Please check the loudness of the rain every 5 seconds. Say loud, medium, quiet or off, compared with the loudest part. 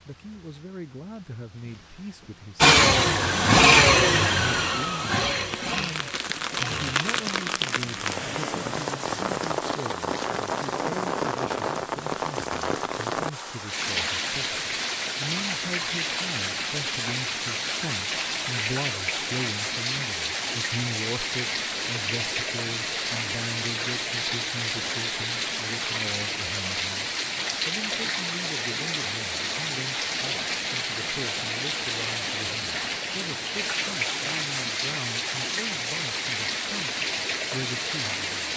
quiet, loud, loud, loud, loud, loud, loud, loud.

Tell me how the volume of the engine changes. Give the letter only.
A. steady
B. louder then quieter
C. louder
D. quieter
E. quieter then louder
D.